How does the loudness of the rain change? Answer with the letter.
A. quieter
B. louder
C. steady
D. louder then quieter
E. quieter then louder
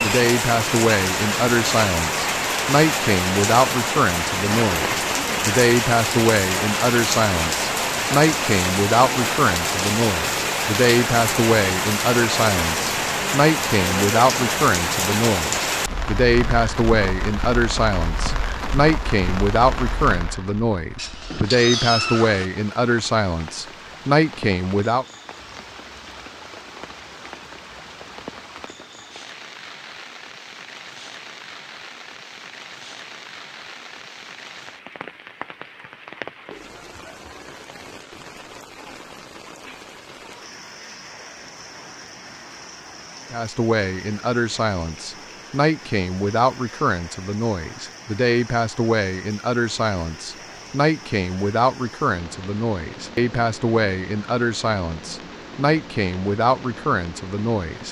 A.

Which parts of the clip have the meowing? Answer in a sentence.
The meowing can be heard from 20.9 to 22.5 s.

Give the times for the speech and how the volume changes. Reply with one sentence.
You can hear the speech from 0.0 to 25.1 s, at a steady volume; and from 43.3 to 57.8 s, at a steady volume.